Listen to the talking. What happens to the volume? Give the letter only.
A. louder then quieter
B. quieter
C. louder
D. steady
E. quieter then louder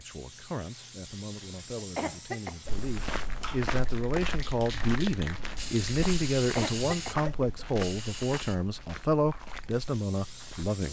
C.